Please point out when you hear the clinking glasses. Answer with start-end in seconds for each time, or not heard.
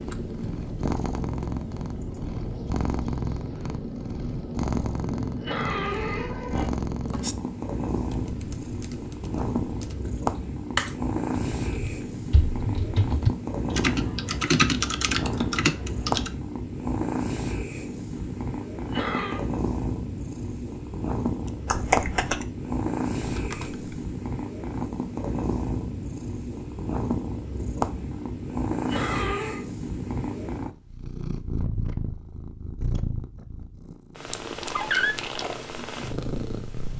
not heard.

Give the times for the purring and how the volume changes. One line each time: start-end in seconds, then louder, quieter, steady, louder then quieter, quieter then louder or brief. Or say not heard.
0.0-36.9 steady.